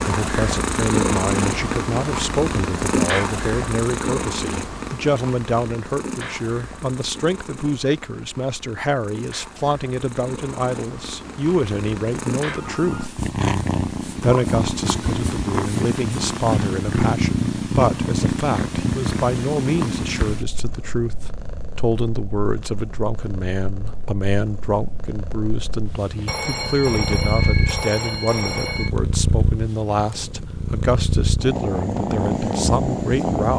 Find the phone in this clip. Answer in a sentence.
The phone can be heard from 12.4 to 13.1 s and from 26.2 to 28.9 s.